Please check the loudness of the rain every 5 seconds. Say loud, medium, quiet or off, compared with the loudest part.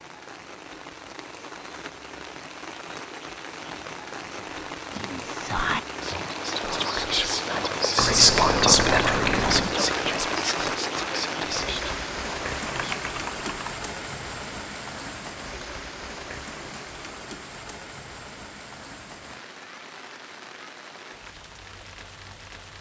medium, loud, loud, medium, quiet.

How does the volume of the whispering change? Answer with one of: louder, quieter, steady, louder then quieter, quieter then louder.
louder then quieter.